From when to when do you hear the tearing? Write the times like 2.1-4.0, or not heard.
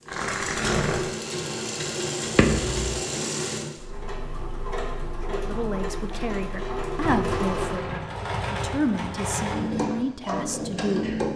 0.1-1.0, 6.7-8.1.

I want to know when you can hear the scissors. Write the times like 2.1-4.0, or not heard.
2.4-3.0.